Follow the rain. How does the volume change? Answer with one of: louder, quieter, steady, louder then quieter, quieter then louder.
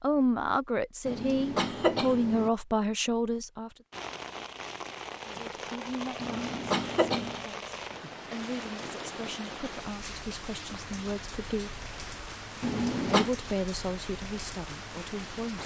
steady.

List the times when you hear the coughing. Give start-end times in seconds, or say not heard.
1.1-2.5, 6.2-7.5, 12.6-13.3.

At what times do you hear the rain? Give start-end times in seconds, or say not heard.
3.9-15.6.